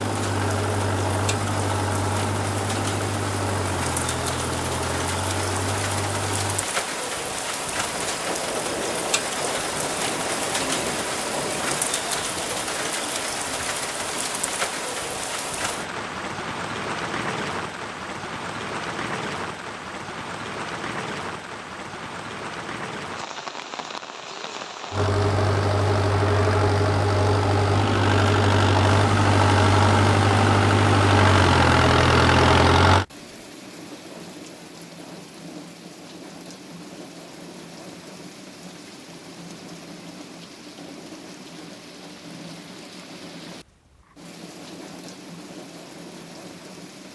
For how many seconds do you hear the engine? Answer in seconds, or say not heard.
15 s.